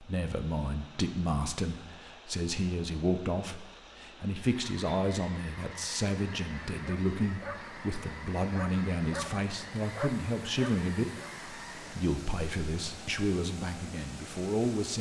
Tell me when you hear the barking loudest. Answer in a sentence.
The loudest moment of the barking is at 10 seconds.